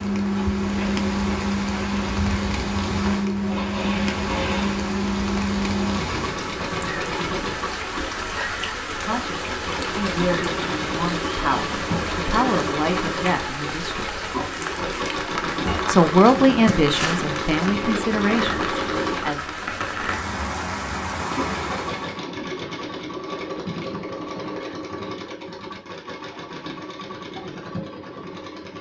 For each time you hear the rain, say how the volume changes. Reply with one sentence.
You can hear the rain from 0.0 to 22.2 s, at a steady volume.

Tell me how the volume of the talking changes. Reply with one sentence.
The loudness of the talking goes up, then down.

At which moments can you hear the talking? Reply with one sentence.
The talking can be heard from 8.8 to 14.2 s and from 15.8 to 19.6 s.